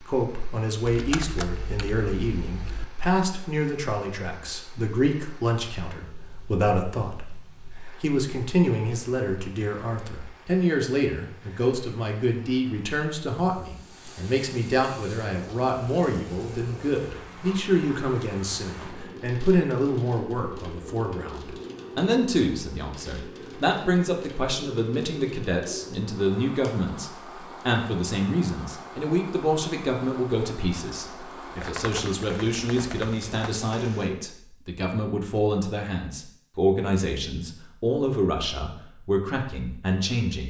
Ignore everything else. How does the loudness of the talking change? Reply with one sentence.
The volume of the talking stays about the same.